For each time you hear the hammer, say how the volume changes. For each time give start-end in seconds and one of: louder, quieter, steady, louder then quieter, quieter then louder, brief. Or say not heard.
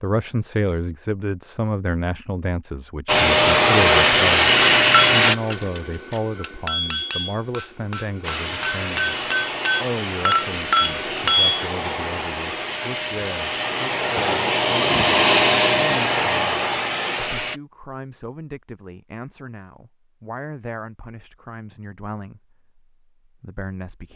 4.5-11.7 quieter then louder.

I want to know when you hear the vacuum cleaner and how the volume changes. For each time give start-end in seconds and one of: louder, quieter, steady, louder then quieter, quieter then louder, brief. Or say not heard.
3.0-5.3 brief
8.2-17.6 louder.